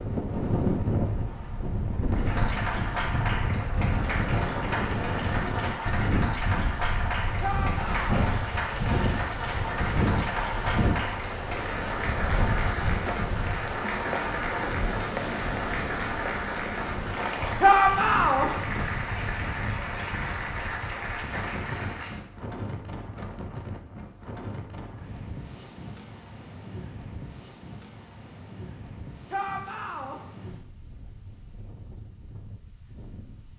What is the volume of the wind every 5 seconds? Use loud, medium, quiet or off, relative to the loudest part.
loud, loud, loud, medium, medium, quiet, quiet.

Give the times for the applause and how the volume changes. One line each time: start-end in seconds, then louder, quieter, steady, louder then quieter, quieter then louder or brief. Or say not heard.
2.1-22.2 steady.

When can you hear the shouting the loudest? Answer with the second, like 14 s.
18 s.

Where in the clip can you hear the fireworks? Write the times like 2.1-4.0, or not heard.
not heard.